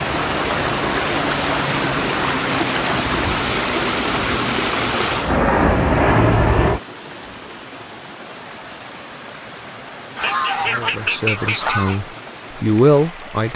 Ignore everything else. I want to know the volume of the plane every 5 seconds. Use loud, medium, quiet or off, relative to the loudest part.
quiet, loud, off.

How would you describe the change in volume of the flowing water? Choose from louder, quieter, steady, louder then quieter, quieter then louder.
quieter.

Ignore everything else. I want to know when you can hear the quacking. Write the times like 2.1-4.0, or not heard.
10.2-12.0.